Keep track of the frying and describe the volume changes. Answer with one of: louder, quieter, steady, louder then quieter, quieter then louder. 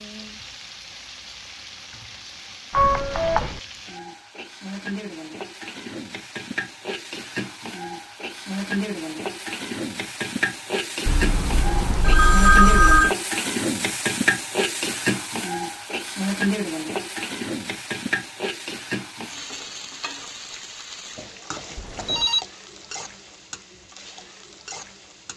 louder then quieter.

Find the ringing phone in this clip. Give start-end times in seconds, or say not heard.
2.7-3.6, 11.1-13.2, 21.8-22.4.